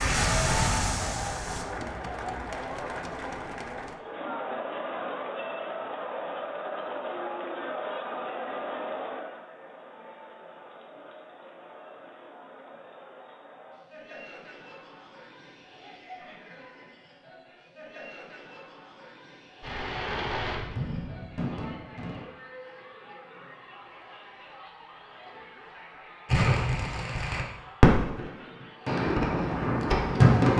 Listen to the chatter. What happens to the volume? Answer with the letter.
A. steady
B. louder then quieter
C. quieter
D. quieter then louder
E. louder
C.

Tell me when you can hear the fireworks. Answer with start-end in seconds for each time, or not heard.
0.0-1.6, 19.6-22.2, 26.2-30.5.